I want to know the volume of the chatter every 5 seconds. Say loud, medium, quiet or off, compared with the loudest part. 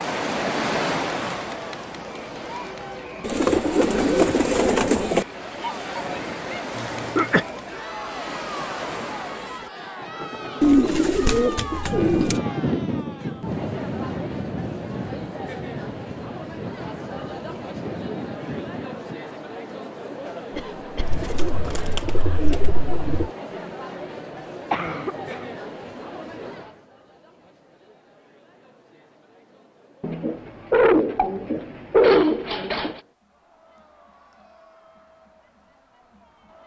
loud, loud, loud, loud, loud, medium, quiet, quiet.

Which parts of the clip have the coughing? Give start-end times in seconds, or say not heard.
6.8-7.5, 20.5-21.2, 24.7-25.4.